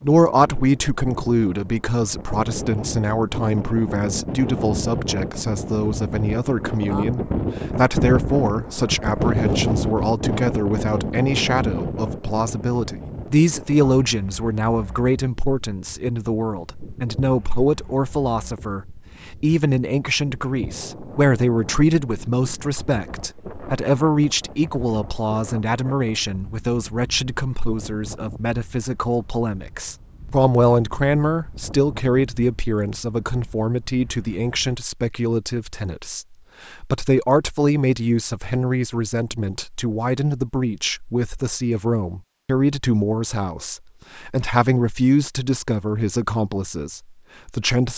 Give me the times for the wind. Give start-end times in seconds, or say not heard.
0.0-34.8.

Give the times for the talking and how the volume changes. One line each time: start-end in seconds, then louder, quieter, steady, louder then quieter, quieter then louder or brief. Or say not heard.
0.0-47.9 steady.